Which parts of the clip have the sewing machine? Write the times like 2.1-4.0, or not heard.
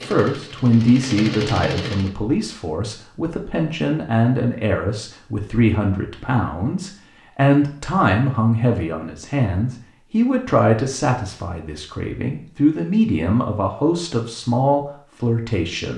0.0-2.1.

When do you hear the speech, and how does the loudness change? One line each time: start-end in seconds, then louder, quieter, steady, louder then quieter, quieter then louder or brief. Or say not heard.
0.0-15.9 steady.